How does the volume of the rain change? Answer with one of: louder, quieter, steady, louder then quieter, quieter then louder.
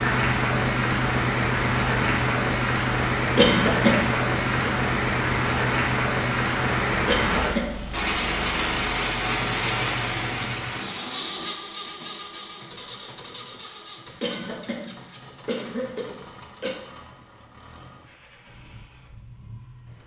steady.